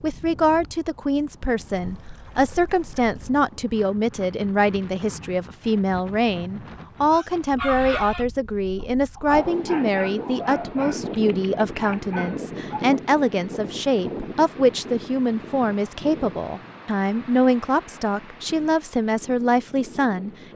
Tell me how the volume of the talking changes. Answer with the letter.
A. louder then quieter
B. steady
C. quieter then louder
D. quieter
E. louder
B.